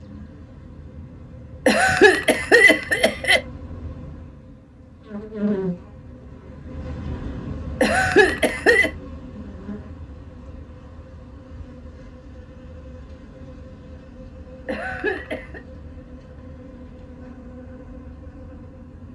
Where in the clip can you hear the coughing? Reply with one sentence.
The coughing can be heard from 1.6 to 3.4 s, from 7.8 to 8.9 s and from 14.7 to 15.6 s.